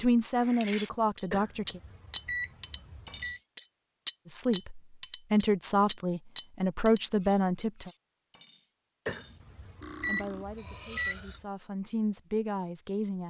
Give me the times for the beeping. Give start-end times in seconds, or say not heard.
1.3-3.4, 9.1-11.4.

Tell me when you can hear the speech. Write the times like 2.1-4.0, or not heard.
0.0-1.8, 4.2-7.9, 10.1-13.2.